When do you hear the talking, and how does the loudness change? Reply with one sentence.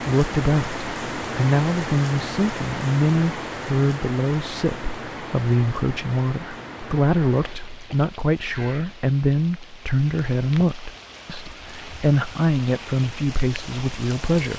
You can hear the talking from 0.0 to 14.5 s, at a steady volume.